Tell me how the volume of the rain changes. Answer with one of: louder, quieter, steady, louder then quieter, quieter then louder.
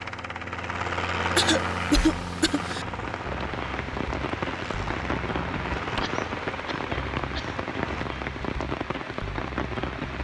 steady.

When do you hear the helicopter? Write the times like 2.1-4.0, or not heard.
0.0-8.1.